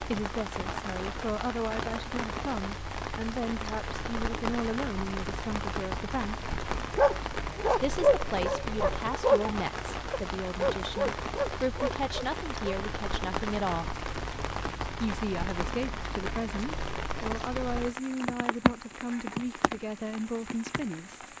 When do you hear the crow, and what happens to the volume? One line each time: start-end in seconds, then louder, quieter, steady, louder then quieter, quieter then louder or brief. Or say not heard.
not heard.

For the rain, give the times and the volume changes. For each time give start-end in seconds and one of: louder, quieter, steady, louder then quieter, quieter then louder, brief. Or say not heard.
0.0-21.3 steady.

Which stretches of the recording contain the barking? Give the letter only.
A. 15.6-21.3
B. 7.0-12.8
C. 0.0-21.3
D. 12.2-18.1
B.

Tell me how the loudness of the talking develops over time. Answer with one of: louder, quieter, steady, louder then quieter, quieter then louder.
steady.